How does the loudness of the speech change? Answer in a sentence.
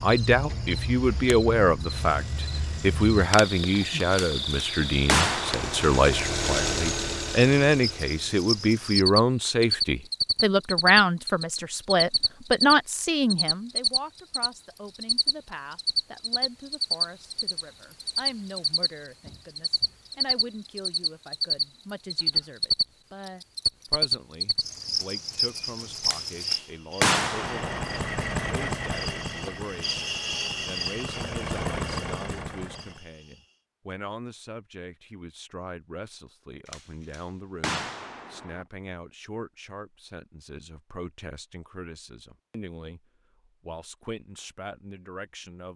The loudness of the speech goes down.